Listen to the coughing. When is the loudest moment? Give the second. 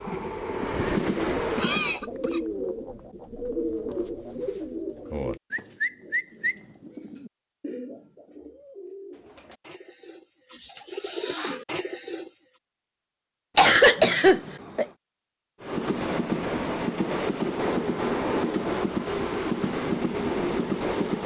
14 s.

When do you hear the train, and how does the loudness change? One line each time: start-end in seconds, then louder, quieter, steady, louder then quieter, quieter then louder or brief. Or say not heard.
0.0-2.0 brief
15.6-21.2 steady.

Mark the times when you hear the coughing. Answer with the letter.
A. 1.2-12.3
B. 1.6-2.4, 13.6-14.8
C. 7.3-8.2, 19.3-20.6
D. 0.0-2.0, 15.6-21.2
B.